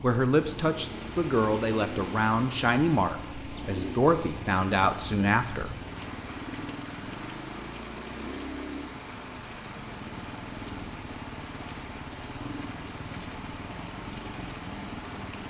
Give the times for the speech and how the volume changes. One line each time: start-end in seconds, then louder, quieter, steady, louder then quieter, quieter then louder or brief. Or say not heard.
0.0-5.8 steady.